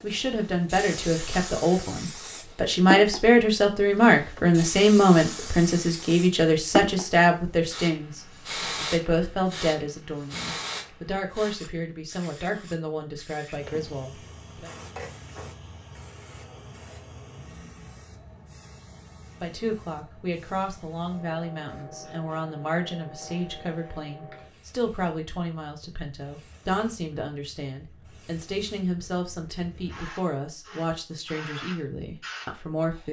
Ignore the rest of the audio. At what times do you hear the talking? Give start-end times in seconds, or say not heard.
0.0-14.7, 19.4-33.0.